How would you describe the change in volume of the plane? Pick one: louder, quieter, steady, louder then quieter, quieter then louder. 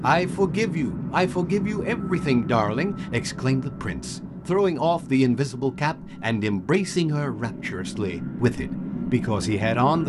quieter then louder.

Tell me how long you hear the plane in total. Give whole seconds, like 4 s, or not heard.
10 s.